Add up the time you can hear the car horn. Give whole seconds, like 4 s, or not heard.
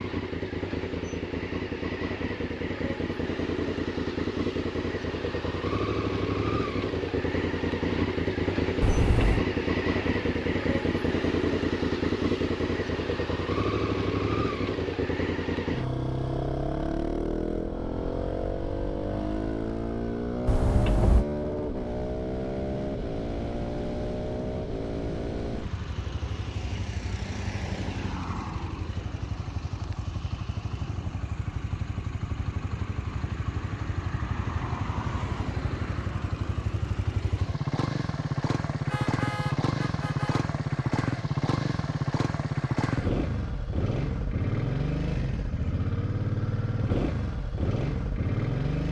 3 s.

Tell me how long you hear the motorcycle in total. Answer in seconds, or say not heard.
49 s.